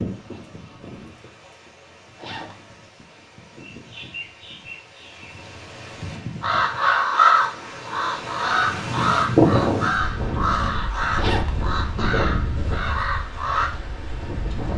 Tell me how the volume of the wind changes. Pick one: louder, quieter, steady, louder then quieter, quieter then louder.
louder then quieter.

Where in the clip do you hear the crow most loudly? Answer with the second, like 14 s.
7 s.